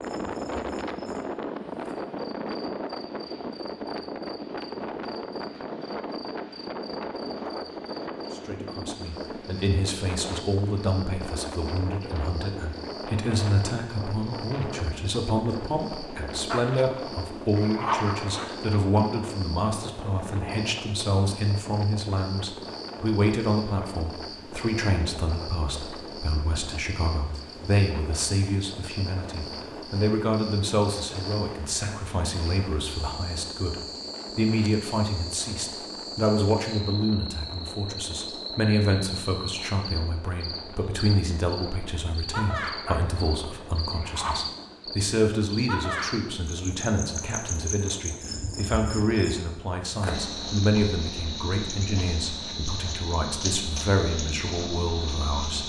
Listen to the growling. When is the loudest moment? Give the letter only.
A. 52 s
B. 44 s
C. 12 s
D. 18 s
D.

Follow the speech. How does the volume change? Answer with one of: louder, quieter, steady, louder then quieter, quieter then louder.
steady.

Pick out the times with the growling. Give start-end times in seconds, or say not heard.
16.4-18.4, 42.9-44.5.